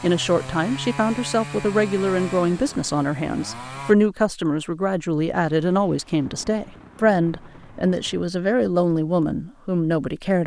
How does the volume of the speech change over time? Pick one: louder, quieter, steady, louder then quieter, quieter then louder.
steady.